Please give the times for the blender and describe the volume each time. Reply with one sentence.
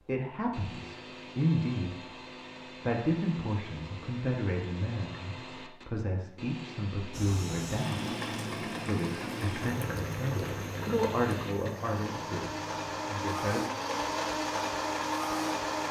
The blender can be heard from 0.0 to 15.8 s, getting louder.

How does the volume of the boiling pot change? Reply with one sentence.
The loudness of the boiling pot goes down.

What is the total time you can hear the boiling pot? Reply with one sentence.
The boiling pot can be heard for 9 seconds in total.